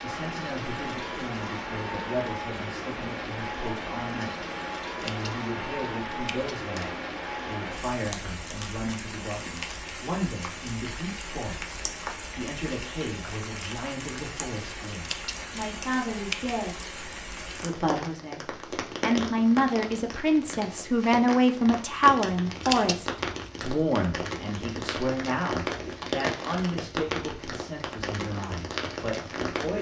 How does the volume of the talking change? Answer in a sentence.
The loudness of the talking goes up, then down.